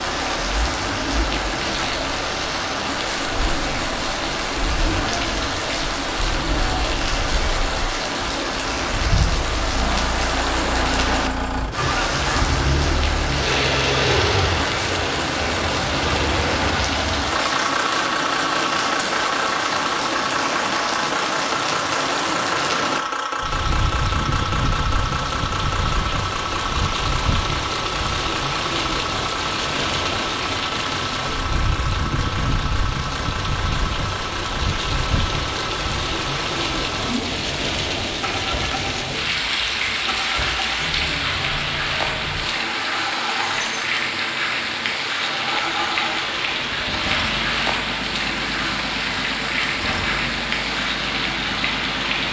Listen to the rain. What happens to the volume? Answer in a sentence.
The loudness of the rain stays about the same.